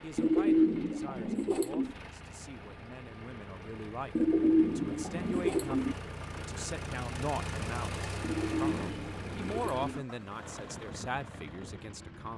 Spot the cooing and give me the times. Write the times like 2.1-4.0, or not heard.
0.1-1.9, 4.2-6.0, 8.2-10.1.